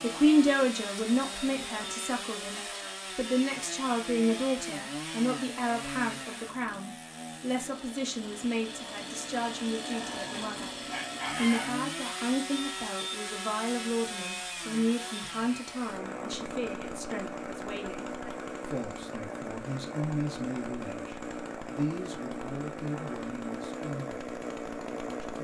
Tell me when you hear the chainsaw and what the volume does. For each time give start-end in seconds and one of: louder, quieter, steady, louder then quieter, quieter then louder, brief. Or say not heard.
0.0-25.3 steady.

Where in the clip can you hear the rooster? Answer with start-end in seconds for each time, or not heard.
9.9-11.7.